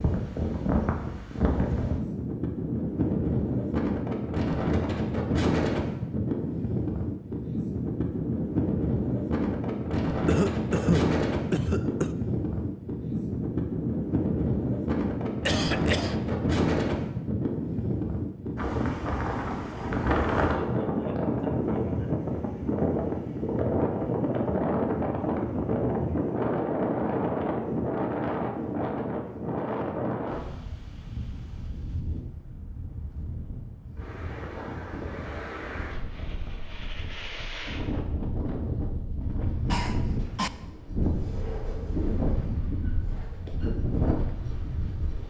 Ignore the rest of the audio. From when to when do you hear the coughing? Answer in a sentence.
You can hear the coughing from 10.2 to 12.2 s, from 15.4 to 16.1 s and from 39.6 to 40.5 s.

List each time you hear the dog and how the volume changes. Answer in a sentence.
You can't hear the dog here.